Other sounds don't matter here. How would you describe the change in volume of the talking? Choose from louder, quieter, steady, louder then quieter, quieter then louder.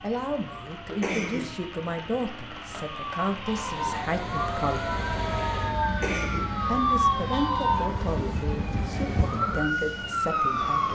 steady.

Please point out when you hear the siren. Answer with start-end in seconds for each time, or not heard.
0.0-10.8.